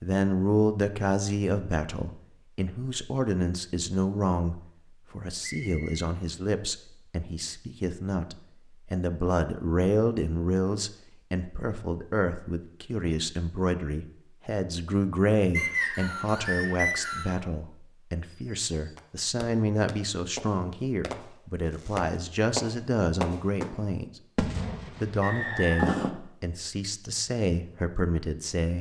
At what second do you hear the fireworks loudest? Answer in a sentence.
The volume of the fireworks peaks at 26 seconds.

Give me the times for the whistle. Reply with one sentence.
The whistle can be heard from 5.4 to 6.0 s, from 15.5 to 17.4 s and from 25.2 to 25.9 s.